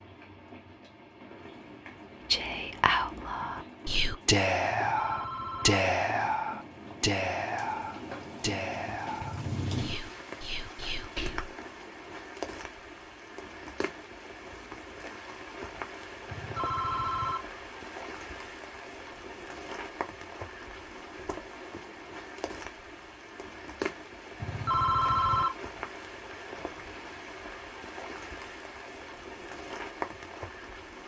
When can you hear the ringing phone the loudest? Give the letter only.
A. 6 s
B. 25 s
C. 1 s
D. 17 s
B.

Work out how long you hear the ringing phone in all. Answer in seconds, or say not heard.
3 s.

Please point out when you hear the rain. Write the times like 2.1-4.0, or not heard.
0.0-31.0.